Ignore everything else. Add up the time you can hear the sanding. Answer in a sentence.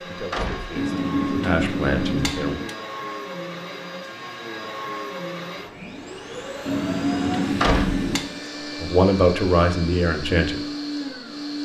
You can't hear the sanding here.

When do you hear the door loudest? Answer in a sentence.
The volume of the door peaks at 8 seconds.